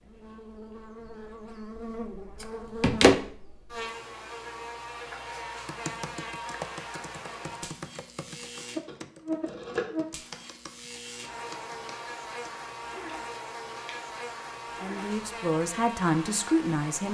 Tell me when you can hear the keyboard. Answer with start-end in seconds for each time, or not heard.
5.7-12.5.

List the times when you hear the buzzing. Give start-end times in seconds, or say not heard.
0.0-17.0.